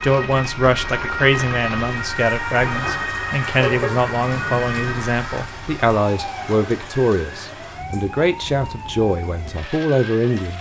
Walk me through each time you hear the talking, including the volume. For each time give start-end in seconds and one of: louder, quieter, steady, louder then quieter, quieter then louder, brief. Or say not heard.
0.0-10.5 steady.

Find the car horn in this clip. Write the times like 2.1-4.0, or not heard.
3.5-5.0.